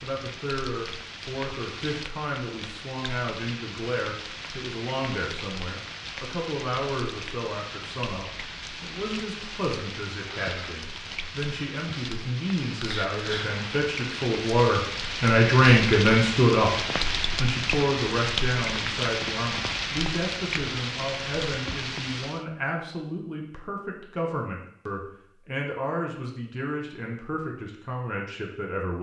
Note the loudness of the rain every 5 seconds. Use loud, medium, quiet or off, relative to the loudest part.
medium, medium, medium, loud, loud, off.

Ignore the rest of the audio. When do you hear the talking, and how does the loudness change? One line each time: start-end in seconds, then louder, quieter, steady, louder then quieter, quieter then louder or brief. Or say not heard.
0.0-28.9 louder then quieter.